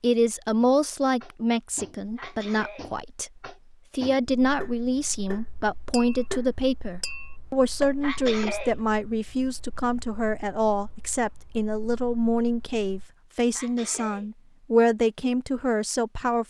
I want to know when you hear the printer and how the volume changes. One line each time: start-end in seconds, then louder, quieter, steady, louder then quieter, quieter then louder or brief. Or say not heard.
not heard.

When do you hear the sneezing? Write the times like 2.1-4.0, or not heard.
2.1-2.9, 8.0-8.8, 13.5-14.3.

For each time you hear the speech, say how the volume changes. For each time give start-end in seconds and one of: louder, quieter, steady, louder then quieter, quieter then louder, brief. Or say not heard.
0.0-16.4 steady.